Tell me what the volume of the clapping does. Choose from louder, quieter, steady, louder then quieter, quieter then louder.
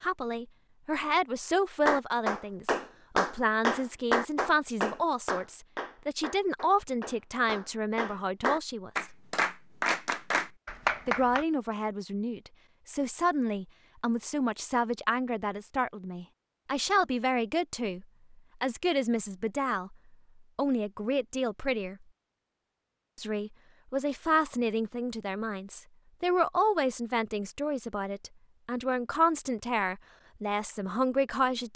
quieter then louder.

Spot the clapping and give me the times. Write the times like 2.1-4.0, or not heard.
1.9-11.4.